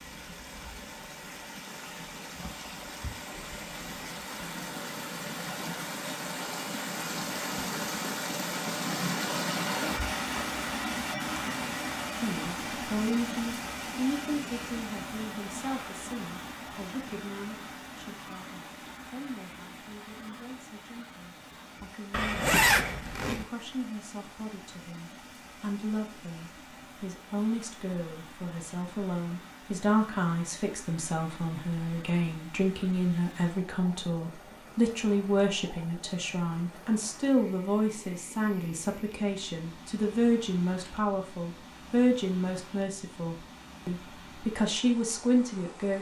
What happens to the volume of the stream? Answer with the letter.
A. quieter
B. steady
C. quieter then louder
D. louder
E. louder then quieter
A.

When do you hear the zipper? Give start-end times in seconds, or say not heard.
22.1-23.4.